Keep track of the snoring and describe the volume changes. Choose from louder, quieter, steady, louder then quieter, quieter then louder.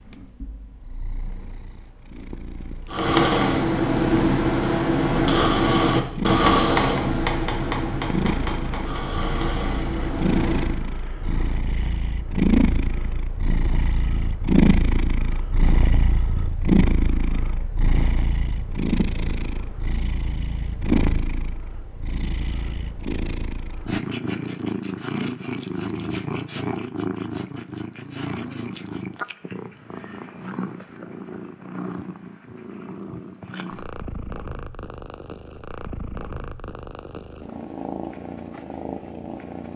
quieter.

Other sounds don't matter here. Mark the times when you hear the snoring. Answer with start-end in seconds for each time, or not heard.
2.9-10.8.